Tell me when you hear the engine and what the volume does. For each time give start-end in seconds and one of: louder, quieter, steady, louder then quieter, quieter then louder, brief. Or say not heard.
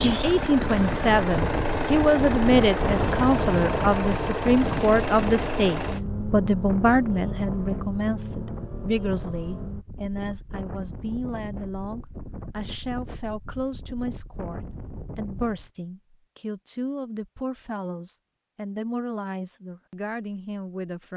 0.0-9.8 quieter.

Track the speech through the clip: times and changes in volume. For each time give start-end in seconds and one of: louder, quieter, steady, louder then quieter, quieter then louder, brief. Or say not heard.
0.0-21.1 quieter.